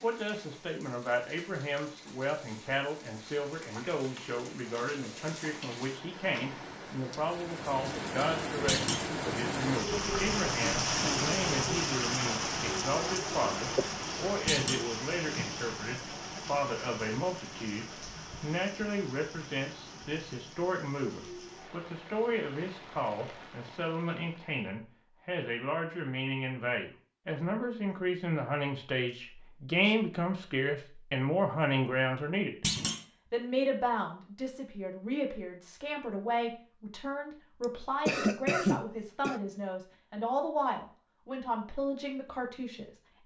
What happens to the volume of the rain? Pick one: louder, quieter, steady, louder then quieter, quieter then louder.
louder then quieter.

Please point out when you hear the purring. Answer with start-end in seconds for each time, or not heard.
not heard.